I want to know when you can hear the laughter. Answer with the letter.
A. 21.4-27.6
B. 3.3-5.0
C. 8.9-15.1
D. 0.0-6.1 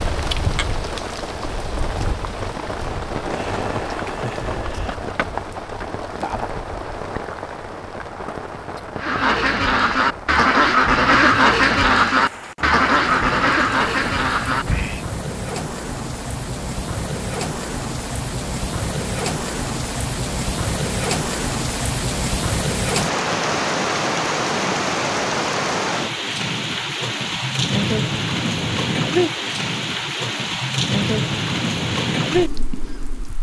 B.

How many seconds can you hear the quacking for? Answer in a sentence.
You can hear the quacking for 6 seconds altogether.